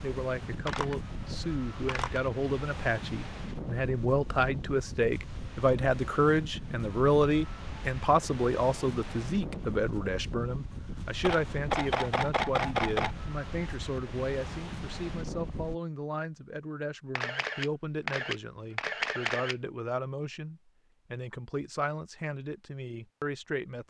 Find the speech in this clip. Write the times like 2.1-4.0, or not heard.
0.0-23.8.